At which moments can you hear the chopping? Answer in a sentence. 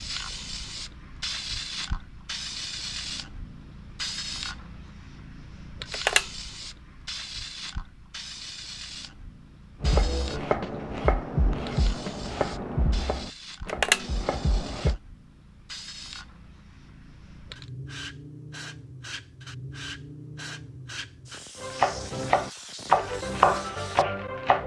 The chopping can be heard from 9.8 to 15.0 s and from 21.6 to 24.6 s.